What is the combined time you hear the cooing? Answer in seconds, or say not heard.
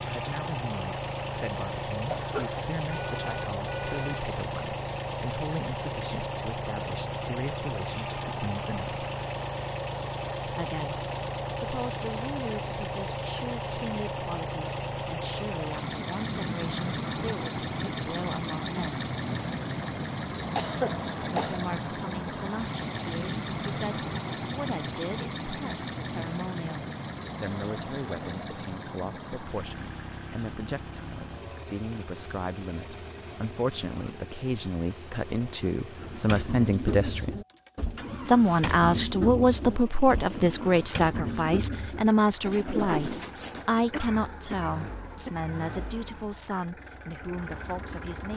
8 s.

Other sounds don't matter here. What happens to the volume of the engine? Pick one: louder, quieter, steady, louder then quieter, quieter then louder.
quieter.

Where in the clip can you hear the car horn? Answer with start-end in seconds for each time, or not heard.
2.9-4.2.